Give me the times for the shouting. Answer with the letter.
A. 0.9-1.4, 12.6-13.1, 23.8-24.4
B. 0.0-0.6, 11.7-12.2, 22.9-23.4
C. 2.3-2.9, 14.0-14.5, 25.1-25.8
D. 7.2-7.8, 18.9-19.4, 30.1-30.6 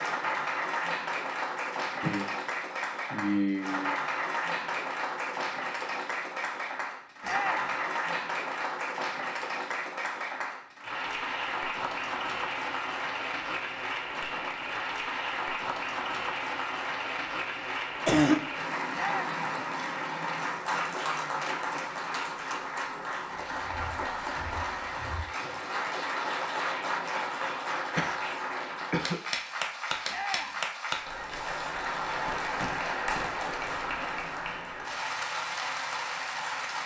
D.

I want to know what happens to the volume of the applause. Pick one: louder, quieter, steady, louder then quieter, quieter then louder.
steady.